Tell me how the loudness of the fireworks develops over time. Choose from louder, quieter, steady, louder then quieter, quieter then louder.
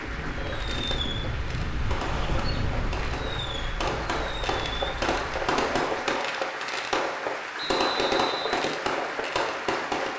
louder.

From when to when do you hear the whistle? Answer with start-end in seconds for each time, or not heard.
7.5-8.5.